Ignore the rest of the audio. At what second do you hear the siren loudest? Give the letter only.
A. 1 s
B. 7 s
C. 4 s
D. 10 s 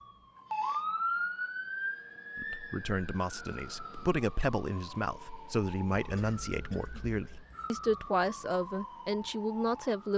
A.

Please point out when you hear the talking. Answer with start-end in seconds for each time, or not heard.
2.4-10.1.